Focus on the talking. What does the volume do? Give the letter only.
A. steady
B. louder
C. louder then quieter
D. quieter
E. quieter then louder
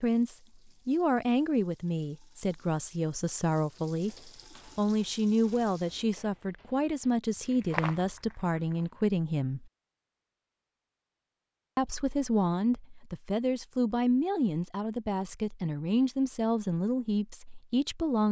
A.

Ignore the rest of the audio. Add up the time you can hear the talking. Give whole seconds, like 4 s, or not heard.
16 s.